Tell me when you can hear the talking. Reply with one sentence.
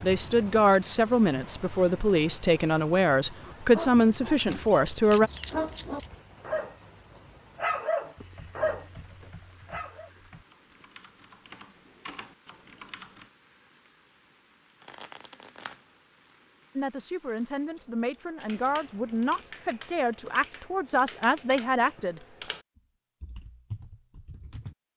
You can hear the talking from 0.0 to 5.3 s and from 16.8 to 22.2 s.